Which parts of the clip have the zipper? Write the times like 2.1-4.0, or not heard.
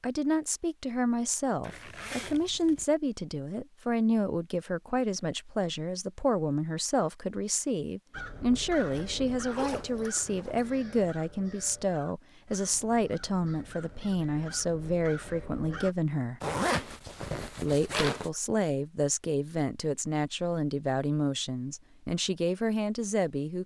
1.6-2.9, 8.9-10.8, 16.4-18.3.